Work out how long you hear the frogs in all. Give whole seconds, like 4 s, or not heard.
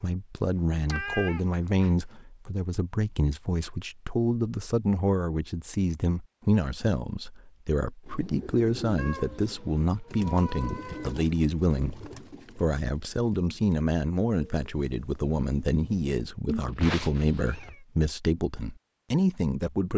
not heard.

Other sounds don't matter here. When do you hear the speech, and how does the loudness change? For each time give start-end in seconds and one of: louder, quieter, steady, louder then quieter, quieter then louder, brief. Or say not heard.
0.0-19.9 steady.